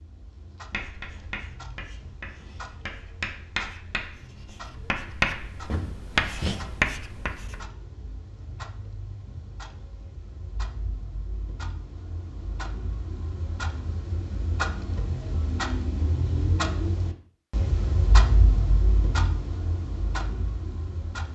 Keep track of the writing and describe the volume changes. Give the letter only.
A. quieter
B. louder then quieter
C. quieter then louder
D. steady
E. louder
E.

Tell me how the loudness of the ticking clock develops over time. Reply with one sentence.
The loudness of the ticking clock goes up.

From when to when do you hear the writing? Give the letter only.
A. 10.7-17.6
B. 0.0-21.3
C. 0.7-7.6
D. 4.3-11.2
C.